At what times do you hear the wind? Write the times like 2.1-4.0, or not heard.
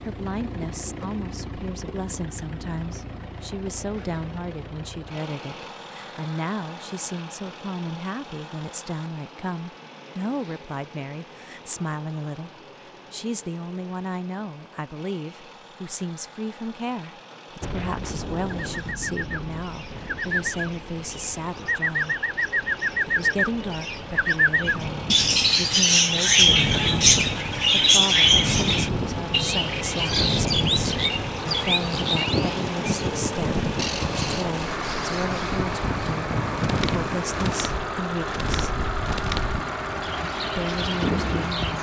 17.6-41.7.